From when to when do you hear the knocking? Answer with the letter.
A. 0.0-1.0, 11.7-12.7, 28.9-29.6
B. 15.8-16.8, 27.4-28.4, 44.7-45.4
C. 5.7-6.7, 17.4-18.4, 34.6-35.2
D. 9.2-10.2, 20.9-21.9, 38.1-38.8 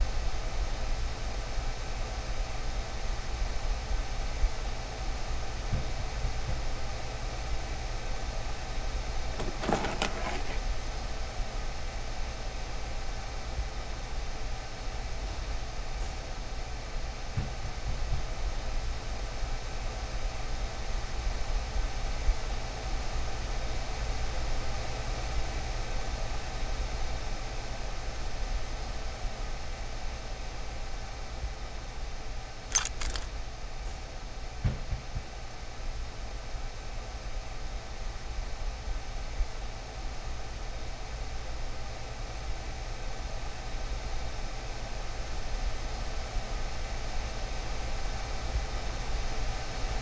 C.